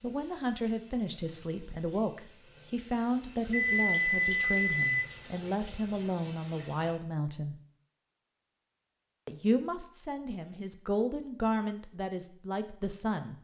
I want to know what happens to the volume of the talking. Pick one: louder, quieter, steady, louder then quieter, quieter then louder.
steady.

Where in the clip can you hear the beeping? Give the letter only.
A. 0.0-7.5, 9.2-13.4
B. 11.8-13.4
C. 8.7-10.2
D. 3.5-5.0
D.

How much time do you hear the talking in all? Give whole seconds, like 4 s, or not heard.
12 s.